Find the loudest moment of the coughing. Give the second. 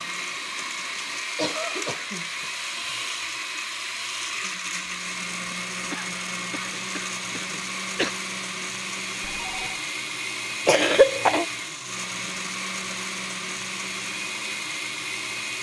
11 s.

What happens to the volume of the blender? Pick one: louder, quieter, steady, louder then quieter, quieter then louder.
steady.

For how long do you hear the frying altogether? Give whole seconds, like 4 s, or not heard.
not heard.